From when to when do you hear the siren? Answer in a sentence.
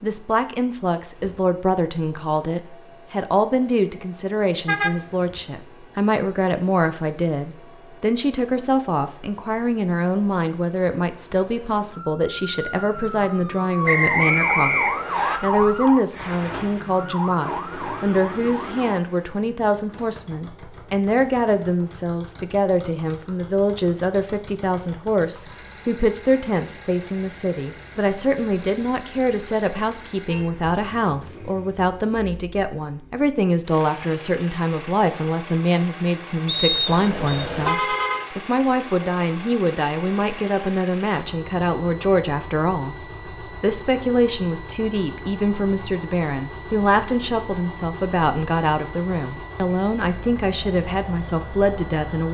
The siren can be heard from 11.9 to 19.0 s.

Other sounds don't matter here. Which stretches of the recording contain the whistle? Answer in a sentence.
The whistle can be heard from 13.8 to 15.4 s and from 36.5 to 37.4 s.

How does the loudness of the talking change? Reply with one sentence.
The volume of the talking stays about the same.